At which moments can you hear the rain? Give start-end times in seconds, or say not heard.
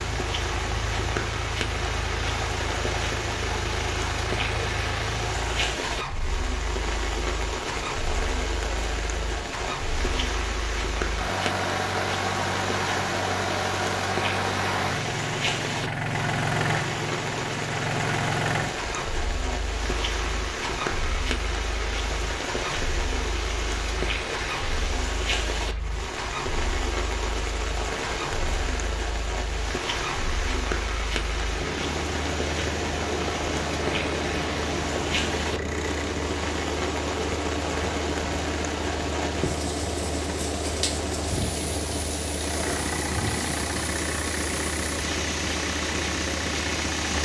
0.0-47.1.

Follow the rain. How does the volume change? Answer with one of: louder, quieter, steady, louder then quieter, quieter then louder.
steady.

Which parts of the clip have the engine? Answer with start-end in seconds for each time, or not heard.
0.0-47.1.